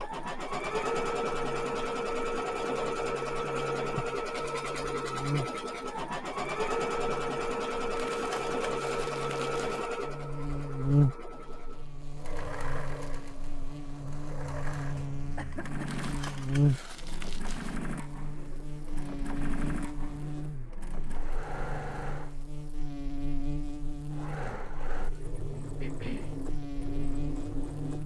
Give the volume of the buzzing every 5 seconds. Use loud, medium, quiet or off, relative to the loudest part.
quiet, medium, loud, loud, medium, medium.